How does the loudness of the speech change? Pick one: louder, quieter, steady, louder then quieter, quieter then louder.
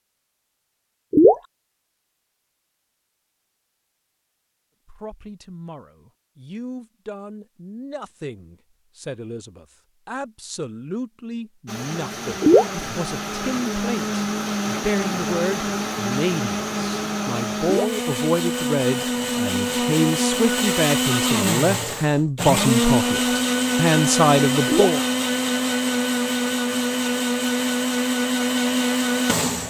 louder.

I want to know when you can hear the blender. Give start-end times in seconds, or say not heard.
11.7-29.6.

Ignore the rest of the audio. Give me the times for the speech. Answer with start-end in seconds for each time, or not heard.
4.8-25.0.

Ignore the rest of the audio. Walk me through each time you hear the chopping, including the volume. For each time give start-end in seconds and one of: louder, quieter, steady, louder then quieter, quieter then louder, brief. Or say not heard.
not heard.